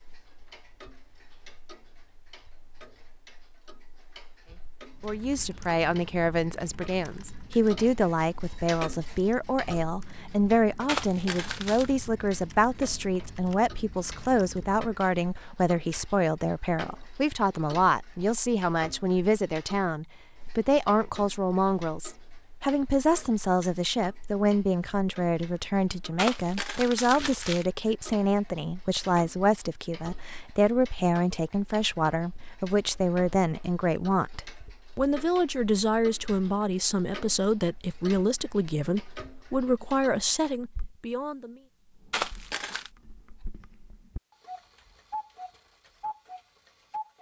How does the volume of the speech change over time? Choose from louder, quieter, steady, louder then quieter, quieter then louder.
steady.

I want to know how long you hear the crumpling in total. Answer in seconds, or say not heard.
3 s.